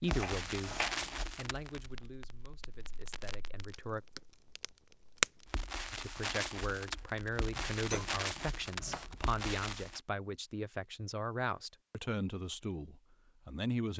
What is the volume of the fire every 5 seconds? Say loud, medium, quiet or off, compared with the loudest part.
medium, loud, off.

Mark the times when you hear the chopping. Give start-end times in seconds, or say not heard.
0.1-1.2, 7.5-9.3.